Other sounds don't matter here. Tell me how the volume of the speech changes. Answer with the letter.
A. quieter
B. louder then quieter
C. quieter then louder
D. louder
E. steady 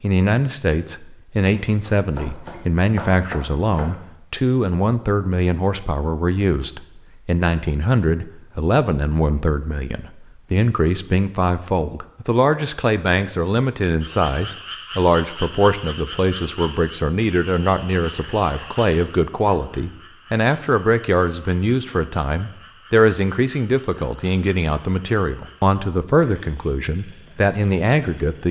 E.